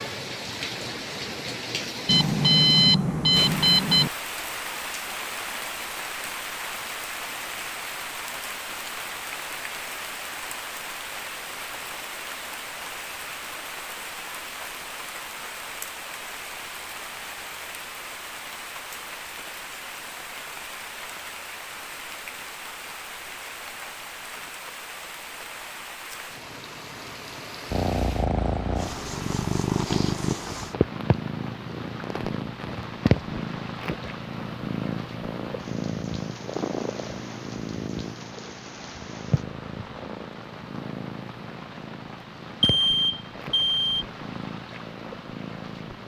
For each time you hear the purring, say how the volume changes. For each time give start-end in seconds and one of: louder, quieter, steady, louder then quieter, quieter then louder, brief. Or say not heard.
27.7-46.0 quieter.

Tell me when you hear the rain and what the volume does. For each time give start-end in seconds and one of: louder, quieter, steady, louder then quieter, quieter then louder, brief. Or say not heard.
0.0-46.0 quieter.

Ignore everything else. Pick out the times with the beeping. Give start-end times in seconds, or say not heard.
2.0-4.1, 42.6-44.0.